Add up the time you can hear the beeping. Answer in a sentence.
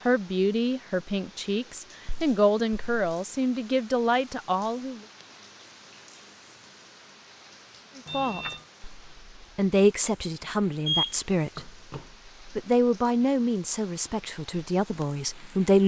The beeping can be heard for 3 seconds in total.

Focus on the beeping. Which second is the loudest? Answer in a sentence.
The volume of the beeping peaks at 11 seconds.